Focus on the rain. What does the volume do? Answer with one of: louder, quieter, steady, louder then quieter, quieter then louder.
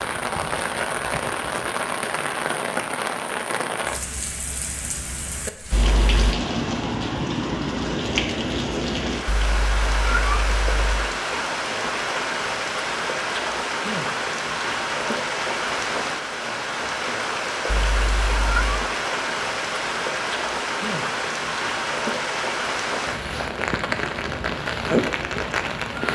steady.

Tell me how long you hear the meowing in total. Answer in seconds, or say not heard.
4 s.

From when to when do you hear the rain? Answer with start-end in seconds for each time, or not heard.
0.0-26.1.